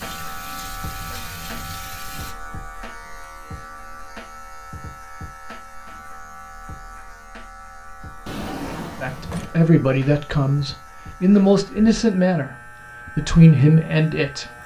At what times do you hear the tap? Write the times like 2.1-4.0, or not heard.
0.0-2.4.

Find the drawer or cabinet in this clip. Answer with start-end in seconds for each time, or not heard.
8.2-9.6.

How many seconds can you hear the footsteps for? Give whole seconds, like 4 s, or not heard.
not heard.